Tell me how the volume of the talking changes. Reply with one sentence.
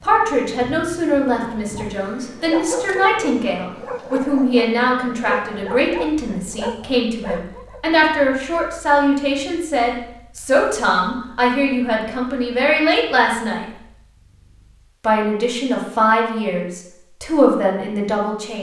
The loudness of the talking stays about the same.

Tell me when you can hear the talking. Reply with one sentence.
The talking can be heard from 0.0 to 13.7 s and from 15.0 to 18.5 s.